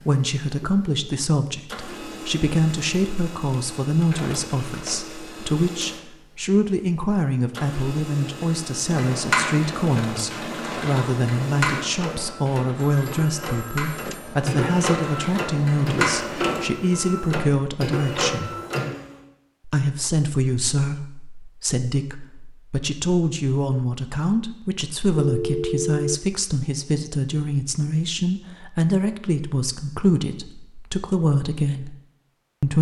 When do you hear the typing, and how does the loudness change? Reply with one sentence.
You can hear the typing from 8.8 to 16.6 s, getting quieter then louder.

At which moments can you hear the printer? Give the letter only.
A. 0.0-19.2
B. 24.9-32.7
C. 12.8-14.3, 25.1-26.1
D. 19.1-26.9
A.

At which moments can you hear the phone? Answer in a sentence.
The phone can be heard from 12.8 to 14.3 s and from 25.1 to 26.1 s.